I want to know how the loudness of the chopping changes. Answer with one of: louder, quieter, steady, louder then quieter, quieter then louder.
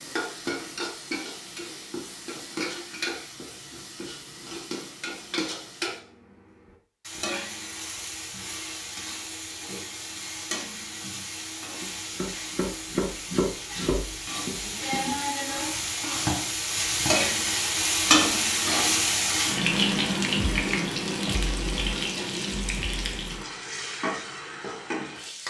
quieter then louder.